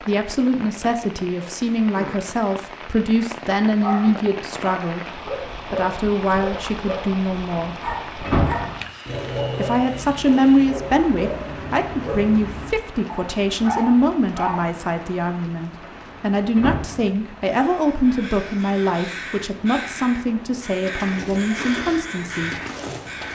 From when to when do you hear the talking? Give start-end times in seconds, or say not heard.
0.0-5.0, 5.7-7.8, 9.6-22.6.